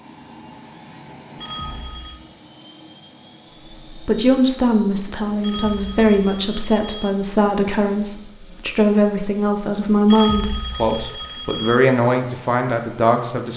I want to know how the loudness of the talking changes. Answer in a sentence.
The volume of the talking stays about the same.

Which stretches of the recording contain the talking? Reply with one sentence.
You can hear the talking from 3.9 to 13.5 s.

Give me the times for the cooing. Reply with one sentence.
You can't hear the cooing here.